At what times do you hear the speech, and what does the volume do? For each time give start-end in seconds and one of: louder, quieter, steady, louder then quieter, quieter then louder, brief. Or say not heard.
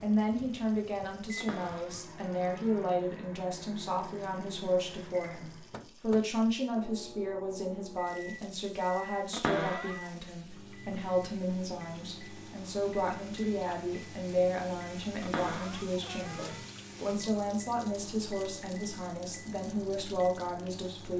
0.0-21.1 steady.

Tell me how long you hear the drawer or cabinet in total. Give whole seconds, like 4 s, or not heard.
4 s.